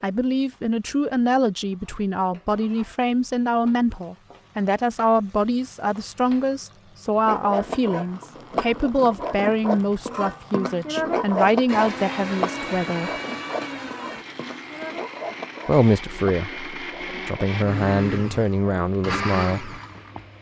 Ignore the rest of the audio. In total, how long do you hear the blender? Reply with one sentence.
You can hear the blender for 9 seconds altogether.